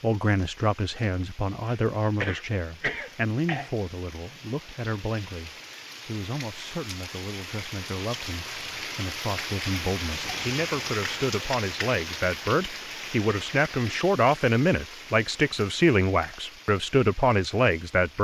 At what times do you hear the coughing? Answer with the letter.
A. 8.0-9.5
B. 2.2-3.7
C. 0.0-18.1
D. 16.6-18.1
B.